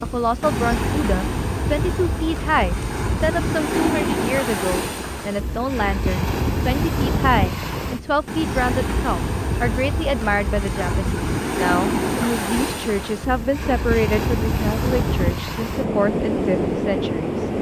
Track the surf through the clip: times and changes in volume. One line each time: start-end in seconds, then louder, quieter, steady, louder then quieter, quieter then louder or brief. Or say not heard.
0.0-17.5 steady.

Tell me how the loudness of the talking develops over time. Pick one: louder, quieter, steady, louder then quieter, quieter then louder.
steady.